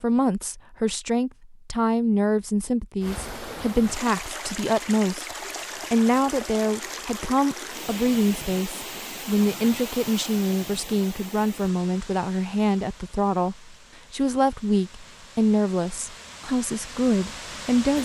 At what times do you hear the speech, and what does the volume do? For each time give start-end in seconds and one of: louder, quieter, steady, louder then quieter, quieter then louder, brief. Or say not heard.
0.0-18.0 steady.